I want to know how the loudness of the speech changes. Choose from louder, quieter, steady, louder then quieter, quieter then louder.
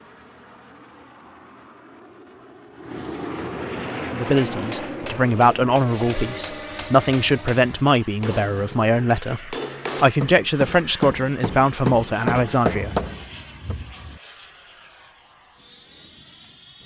steady.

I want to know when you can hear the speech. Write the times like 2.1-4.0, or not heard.
4.1-12.9.